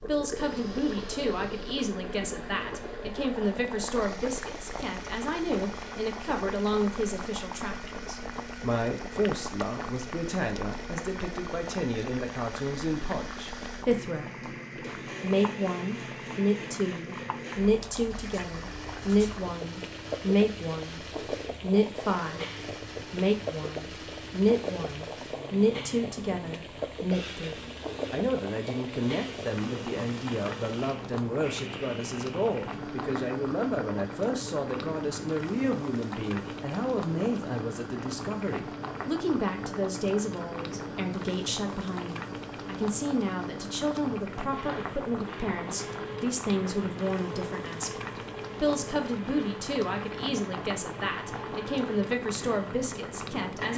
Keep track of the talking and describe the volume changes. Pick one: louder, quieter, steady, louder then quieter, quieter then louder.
steady.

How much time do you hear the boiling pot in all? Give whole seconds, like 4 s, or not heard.
54 s.